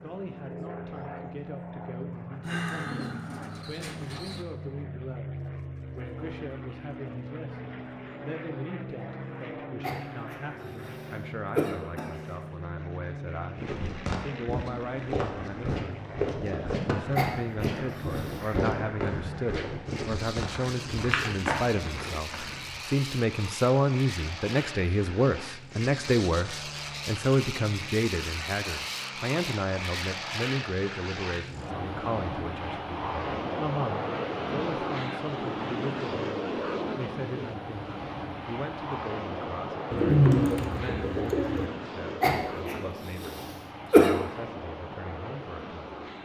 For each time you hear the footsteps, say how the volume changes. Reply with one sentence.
The footsteps can be heard from 13.6 to 22.8 s, at a steady volume.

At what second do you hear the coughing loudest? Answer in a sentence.
The volume of the coughing peaks at 44 seconds.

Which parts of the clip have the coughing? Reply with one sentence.
The coughing can be heard from 9.8 to 12.2 s, from 17.1 to 18.6 s and from 42.2 to 44.2 s.